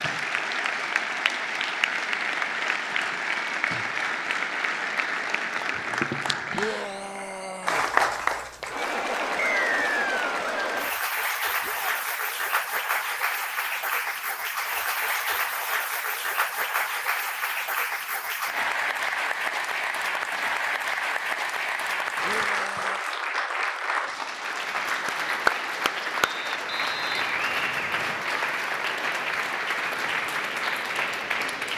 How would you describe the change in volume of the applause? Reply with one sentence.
The volume of the applause stays about the same.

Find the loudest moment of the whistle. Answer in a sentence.
The volume of the whistle peaks at 10 seconds.